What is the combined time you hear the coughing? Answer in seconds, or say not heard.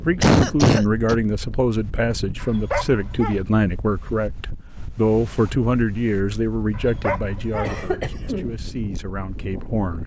2 s.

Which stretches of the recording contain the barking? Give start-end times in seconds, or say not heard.
2.4-3.4, 6.7-7.8.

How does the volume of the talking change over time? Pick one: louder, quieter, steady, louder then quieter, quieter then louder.
quieter.